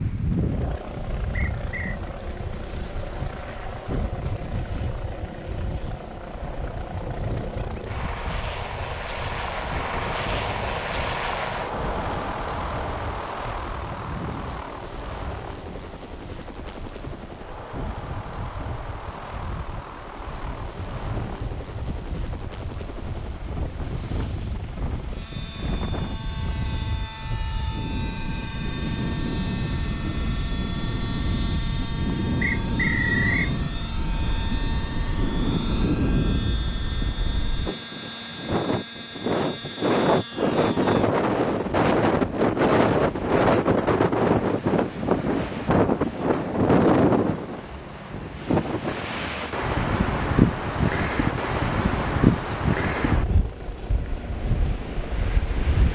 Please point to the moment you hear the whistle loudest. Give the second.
33 s.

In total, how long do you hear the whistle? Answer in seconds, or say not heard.
2 s.